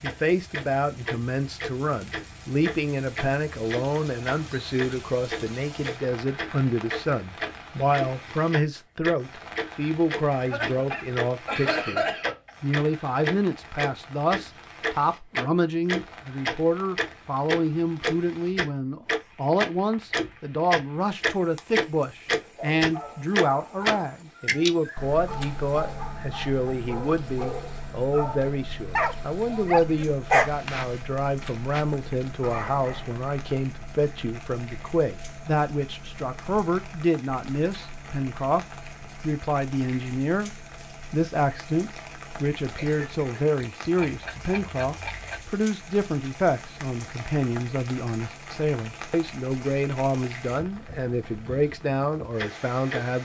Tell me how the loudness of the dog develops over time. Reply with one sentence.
The volume of the dog goes up, then down.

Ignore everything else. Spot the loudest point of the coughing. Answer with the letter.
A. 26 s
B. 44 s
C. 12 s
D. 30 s
C.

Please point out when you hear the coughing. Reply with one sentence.
The coughing can be heard from 10.3 to 12.5 s and from 42.6 to 43.2 s.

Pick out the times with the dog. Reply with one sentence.
You can hear the dog from 22.4 to 33.2 s.